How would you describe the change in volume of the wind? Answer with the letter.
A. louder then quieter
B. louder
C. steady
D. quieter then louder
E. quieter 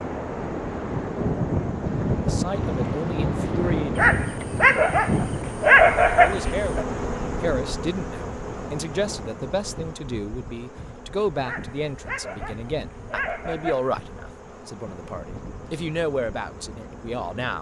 E.